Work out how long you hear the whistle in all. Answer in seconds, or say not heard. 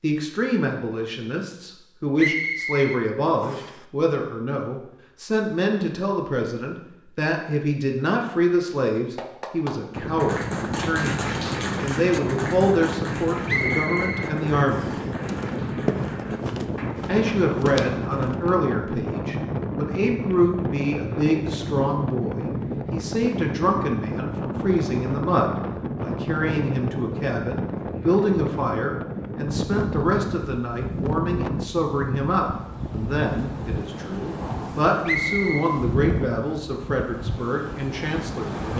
4 s.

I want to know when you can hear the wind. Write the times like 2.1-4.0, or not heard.
9.9-38.7.